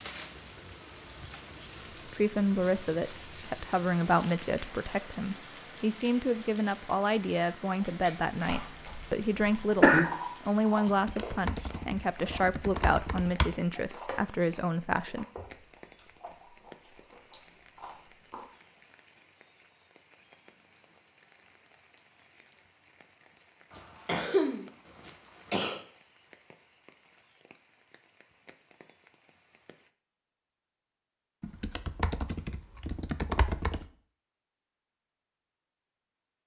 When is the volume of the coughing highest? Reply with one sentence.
The volume of the coughing peaks at 10 seconds.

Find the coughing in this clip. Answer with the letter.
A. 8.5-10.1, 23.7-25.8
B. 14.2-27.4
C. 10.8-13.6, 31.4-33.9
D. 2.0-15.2
A.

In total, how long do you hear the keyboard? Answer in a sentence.
The keyboard can be heard for 5 seconds in total.